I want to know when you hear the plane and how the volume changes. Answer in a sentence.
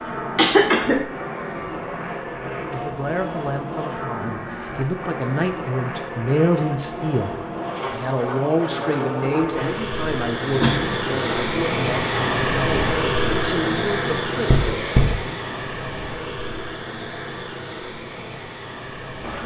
The plane can be heard from 0.0 to 19.4 s, getting louder then quieter.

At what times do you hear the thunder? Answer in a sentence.
The thunder can't be heard in this clip.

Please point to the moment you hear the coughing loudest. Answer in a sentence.
The volume of the coughing peaks at 1 second.